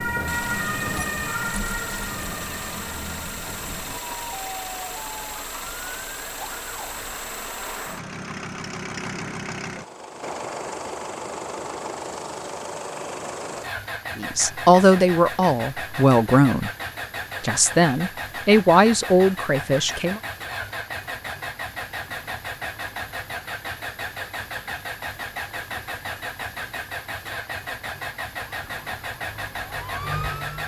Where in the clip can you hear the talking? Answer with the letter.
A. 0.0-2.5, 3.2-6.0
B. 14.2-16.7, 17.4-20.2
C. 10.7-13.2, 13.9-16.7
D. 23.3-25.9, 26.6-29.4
B.